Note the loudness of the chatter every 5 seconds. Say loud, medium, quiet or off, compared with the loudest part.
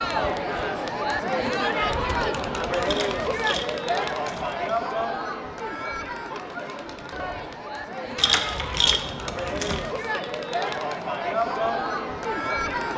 loud, medium, loud.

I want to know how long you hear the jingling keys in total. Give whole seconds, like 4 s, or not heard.
4 s.